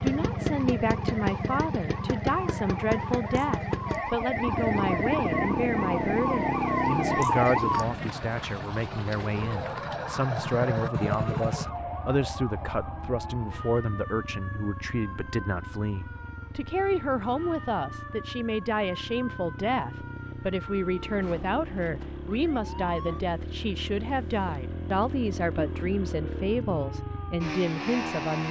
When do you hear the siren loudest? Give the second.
7 s.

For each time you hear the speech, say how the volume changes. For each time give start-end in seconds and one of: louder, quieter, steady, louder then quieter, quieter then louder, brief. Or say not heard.
0.0-28.4 steady.